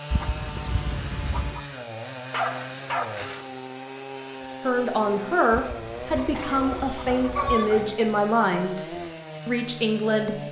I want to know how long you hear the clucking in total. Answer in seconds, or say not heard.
4 s.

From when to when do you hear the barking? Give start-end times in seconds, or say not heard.
2.3-3.5, 6.2-8.0.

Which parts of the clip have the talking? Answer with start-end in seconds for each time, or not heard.
4.6-10.4.